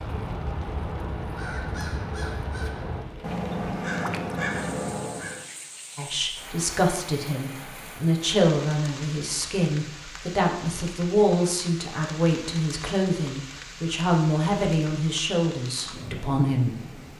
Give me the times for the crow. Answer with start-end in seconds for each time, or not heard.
0.0-5.5.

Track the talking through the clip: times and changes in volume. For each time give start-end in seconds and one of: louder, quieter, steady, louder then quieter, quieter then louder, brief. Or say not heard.
6.0-17.0 steady.